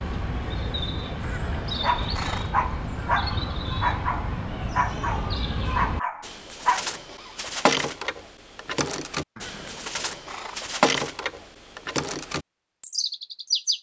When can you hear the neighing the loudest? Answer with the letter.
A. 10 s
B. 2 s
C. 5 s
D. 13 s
B.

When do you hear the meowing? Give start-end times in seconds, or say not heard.
not heard.